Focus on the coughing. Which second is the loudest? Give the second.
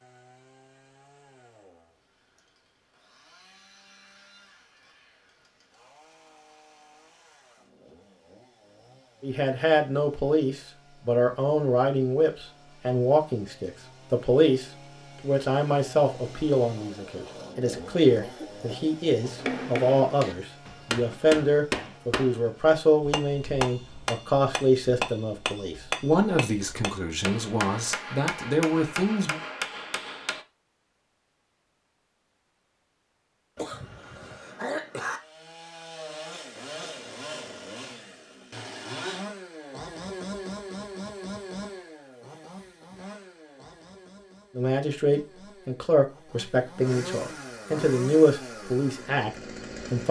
35 s.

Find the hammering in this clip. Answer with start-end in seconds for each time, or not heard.
19.4-30.4.